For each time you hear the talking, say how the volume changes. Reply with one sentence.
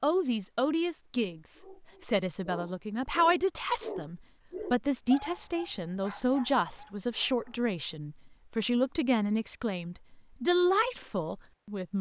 The talking can be heard from 0.0 to 11.9 s, at a steady volume.